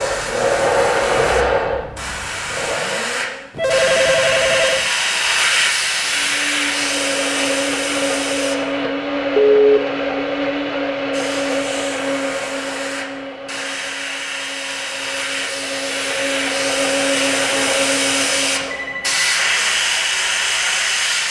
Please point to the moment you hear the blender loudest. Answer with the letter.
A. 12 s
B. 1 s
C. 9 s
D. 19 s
B.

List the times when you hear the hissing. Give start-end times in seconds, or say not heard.
0.0-8.6, 11.1-21.2.